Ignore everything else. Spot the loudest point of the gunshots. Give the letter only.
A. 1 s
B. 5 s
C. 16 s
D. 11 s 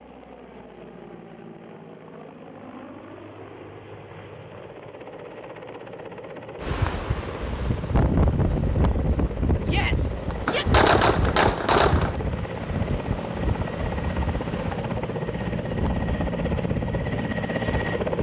D.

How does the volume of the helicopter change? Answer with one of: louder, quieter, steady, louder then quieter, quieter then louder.
louder.